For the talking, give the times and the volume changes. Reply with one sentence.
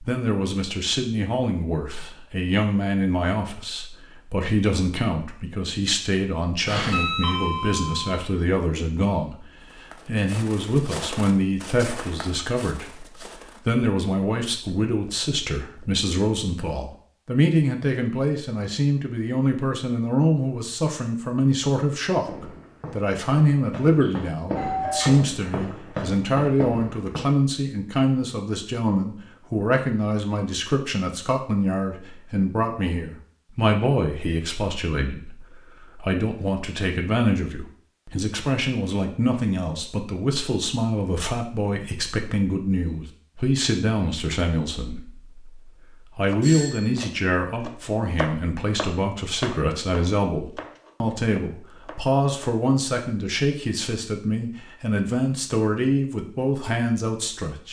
You can hear the talking from 0.0 to 57.6 s, at a steady volume.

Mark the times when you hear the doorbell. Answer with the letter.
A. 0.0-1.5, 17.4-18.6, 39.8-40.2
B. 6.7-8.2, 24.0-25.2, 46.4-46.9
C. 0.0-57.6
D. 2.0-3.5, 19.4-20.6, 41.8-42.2
B.